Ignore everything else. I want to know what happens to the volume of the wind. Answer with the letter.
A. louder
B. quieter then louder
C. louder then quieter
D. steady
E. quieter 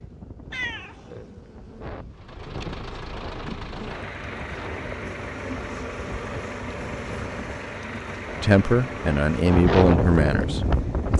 A.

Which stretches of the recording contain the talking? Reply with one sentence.
You can hear the talking from 8.4 to 11.1 s.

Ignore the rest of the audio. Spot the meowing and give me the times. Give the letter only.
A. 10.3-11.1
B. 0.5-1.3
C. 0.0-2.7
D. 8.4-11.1
B.